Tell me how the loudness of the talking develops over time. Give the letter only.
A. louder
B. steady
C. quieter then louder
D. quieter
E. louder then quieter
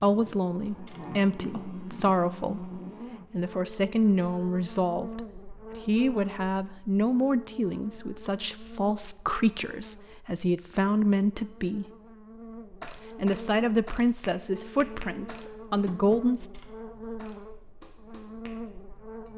B.